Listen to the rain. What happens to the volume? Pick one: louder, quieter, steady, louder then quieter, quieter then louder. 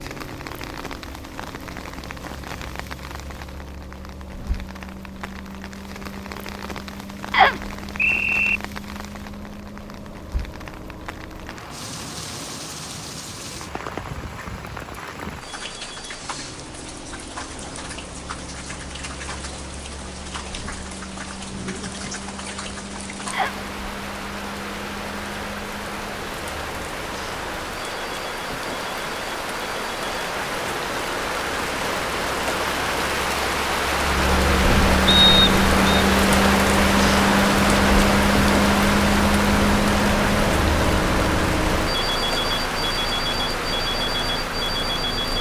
louder.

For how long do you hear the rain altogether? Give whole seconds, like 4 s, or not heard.
45 s.